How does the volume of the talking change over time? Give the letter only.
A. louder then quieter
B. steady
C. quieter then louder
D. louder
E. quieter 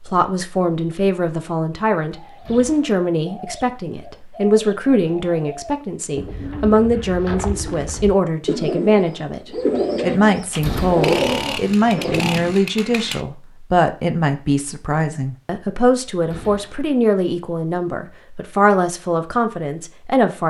B.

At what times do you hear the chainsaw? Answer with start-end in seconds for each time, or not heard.
10.5-13.2.